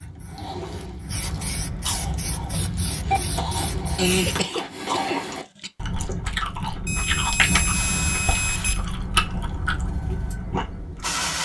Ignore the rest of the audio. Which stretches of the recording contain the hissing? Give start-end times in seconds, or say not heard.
0.0-4.5, 7.4-11.4.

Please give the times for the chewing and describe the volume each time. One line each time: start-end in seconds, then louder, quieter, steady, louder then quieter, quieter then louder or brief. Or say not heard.
0.0-11.1 louder.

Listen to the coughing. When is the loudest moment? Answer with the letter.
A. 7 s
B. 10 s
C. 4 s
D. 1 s
C.